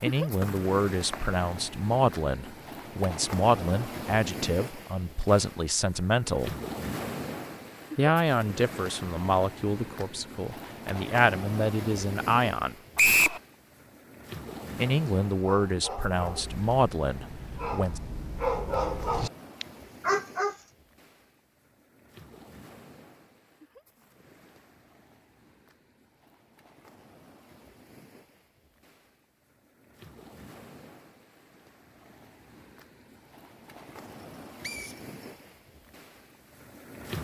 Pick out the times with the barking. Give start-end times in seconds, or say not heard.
15.4-20.6.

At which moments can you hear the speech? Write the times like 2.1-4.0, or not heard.
0.0-6.5, 8.0-12.8, 14.8-18.0.